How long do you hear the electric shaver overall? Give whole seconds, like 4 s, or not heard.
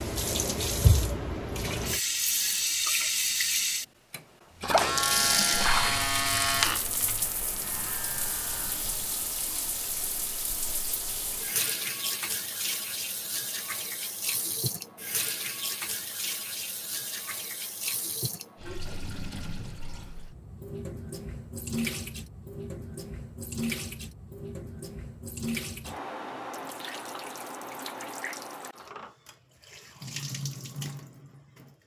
4 s.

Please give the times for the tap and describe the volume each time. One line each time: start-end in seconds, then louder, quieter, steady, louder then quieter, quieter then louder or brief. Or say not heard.
0.0-31.8 quieter.